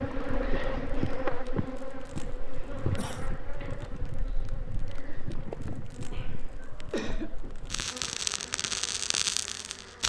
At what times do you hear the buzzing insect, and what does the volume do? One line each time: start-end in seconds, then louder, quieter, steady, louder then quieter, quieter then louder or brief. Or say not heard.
0.0-10.0 quieter.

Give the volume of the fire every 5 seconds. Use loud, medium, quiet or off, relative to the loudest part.
quiet, loud.